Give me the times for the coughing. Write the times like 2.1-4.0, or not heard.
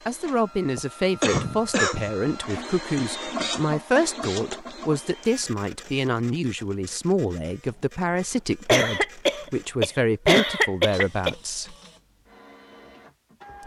0.8-2.1, 8.7-11.3.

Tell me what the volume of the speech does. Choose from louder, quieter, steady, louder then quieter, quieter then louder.
steady.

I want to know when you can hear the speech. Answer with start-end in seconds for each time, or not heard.
0.1-11.8.